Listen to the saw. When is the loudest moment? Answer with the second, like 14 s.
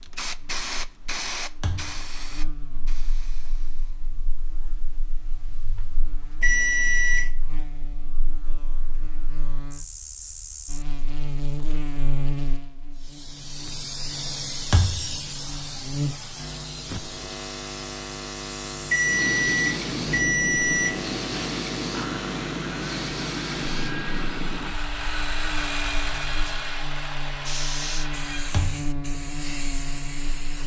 26 s.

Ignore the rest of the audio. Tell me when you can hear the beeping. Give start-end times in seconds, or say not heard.
6.4-7.3, 18.9-21.0.